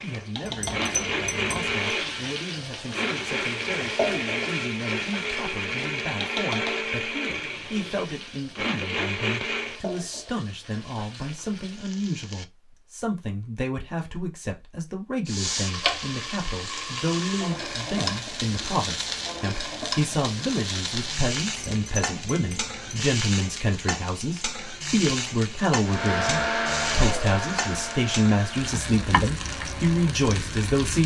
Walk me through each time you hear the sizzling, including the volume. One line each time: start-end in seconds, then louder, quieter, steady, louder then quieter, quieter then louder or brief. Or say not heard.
0.0-12.4 quieter
15.2-31.0 steady.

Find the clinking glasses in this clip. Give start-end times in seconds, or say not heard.
0.5-1.9, 21.4-23.1.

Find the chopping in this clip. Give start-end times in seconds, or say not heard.
not heard.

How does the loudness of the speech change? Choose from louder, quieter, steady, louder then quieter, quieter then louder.
louder.